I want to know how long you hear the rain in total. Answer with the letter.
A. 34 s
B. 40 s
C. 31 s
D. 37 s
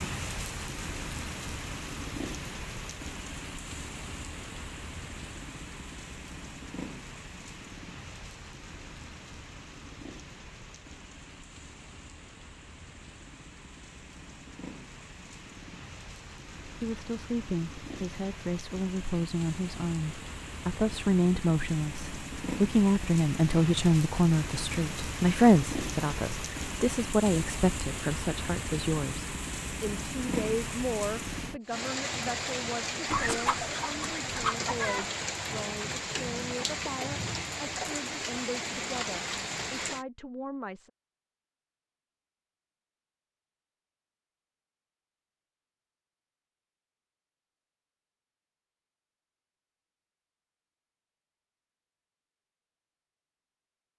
B.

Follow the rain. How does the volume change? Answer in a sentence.
The volume of the rain goes down, then up.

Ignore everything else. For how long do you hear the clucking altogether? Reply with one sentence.
You can hear the clucking for 2 seconds altogether.